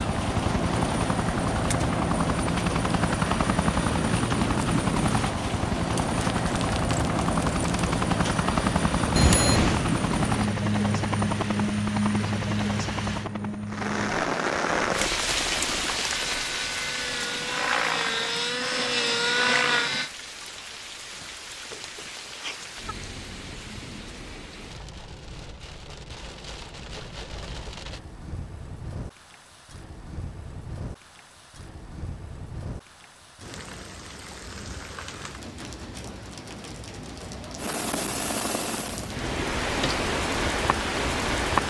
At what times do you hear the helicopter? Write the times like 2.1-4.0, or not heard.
0.0-20.1, 37.5-41.6.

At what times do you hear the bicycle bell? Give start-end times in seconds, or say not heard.
9.2-9.8.